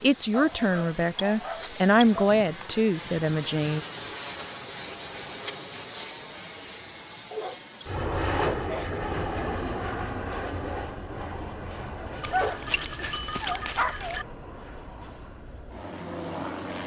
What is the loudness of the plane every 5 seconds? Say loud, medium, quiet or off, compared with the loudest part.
loud, loud, medium, medium.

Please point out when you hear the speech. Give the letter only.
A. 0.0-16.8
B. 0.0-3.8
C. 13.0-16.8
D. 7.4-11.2
B.